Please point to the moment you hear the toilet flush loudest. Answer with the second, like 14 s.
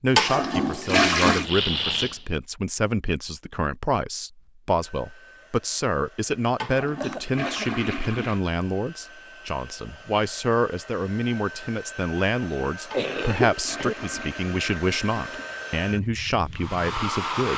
1 s.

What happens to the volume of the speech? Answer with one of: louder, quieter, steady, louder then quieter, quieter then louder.
steady.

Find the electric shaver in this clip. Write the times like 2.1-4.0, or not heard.
not heard.